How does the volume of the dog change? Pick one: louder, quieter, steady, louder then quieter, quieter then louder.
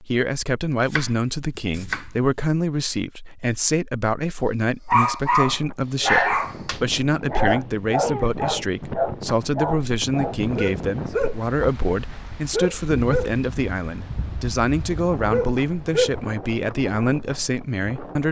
quieter.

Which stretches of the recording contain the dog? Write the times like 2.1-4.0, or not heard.
4.9-16.2.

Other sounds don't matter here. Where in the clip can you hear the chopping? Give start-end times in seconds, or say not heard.
0.8-2.1.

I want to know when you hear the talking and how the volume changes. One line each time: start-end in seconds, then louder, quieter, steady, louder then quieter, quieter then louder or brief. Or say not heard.
0.0-18.2 steady.